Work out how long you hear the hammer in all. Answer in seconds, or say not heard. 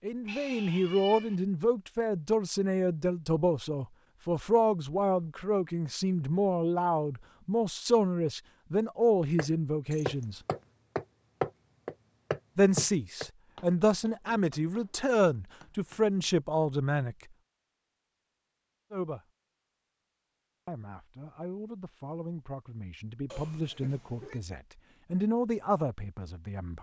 7 s.